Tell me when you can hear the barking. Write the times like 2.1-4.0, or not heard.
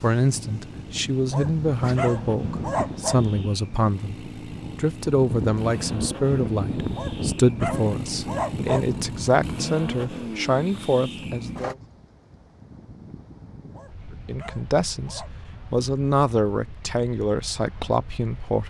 1.3-3.2, 7.0-8.9, 13.7-15.3.